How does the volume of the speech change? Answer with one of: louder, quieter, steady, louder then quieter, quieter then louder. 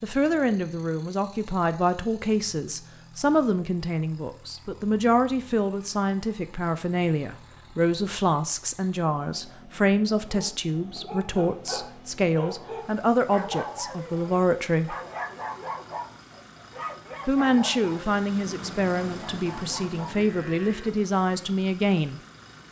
steady.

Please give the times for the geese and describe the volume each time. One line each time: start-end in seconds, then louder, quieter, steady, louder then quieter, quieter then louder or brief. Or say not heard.
not heard.